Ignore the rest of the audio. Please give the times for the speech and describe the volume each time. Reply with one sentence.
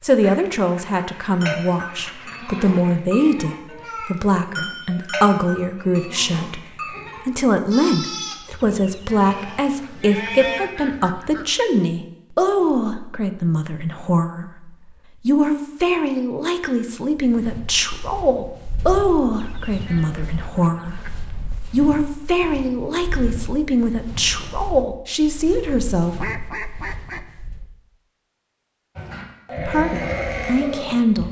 You can hear the speech from 0.0 to 26.3 s, at a steady volume; and briefly from 29.6 to 31.2 s.